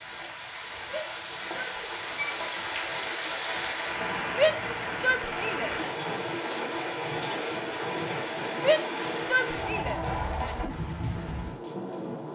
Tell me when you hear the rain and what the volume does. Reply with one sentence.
You can hear the rain from 0.0 to 12.3 s, at a steady volume.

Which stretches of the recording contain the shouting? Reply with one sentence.
You can hear the shouting from 0.8 to 1.8 s, from 4.3 to 5.8 s and from 8.6 to 10.6 s.